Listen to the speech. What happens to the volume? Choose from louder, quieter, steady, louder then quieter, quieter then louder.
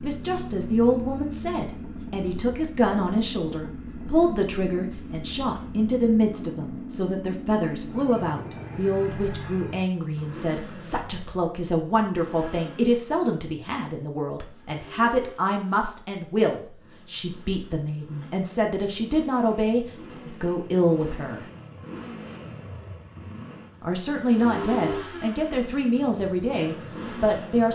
steady.